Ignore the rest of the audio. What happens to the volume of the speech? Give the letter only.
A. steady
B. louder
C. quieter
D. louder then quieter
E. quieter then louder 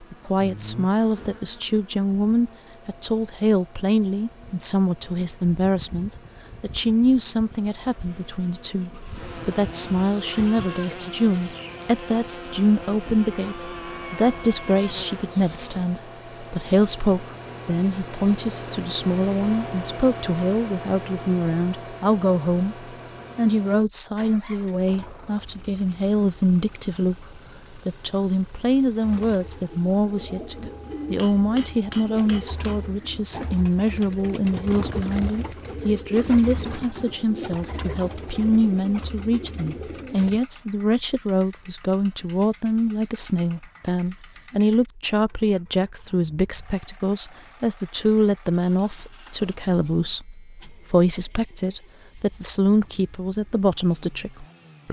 A.